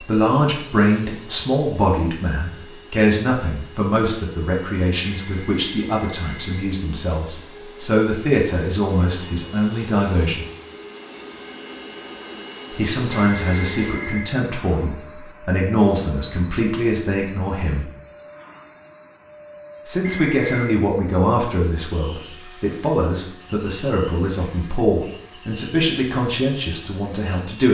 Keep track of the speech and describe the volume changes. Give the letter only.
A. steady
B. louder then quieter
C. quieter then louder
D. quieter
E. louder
A.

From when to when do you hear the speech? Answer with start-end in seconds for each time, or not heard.
0.0-10.4, 12.7-17.9, 19.9-27.6.